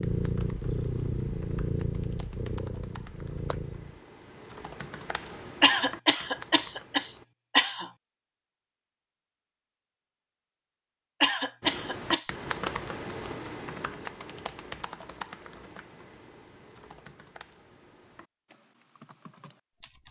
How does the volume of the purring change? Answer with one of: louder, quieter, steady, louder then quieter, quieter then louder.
quieter.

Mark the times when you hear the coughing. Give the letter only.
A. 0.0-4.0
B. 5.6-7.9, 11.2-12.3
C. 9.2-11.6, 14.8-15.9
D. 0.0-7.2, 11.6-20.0
B.